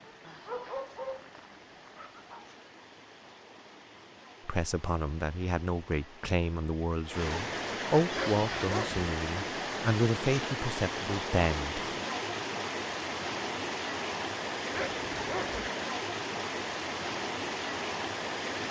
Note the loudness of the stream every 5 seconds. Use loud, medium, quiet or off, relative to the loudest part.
quiet, loud, loud, loud.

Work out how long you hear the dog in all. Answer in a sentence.
The dog can be heard for 4 seconds in total.